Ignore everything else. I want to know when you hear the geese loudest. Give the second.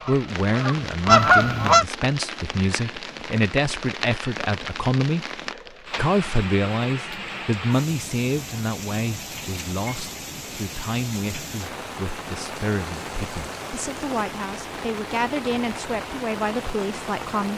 1 s.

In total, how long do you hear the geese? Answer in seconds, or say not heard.
2 s.